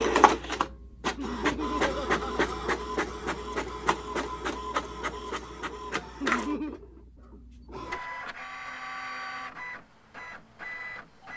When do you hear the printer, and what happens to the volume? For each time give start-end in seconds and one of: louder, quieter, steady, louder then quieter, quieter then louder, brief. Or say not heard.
0.0-11.3 quieter.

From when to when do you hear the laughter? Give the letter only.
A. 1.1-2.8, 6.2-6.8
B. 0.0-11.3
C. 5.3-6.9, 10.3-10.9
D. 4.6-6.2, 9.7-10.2
A.